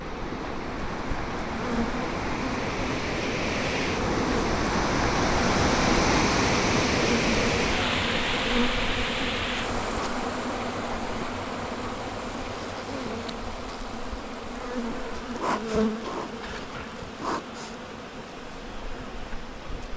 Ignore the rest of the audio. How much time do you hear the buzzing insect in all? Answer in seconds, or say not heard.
20 s.